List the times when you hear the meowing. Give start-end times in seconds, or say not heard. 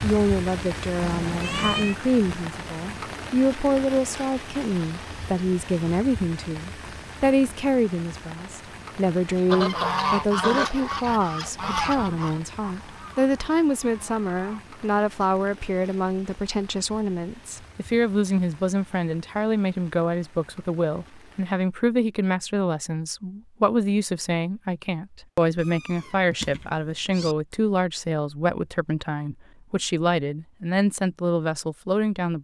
1.0-1.9, 25.6-27.4.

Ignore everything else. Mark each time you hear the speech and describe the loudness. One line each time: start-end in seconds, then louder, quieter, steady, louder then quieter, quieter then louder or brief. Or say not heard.
0.0-32.3 steady.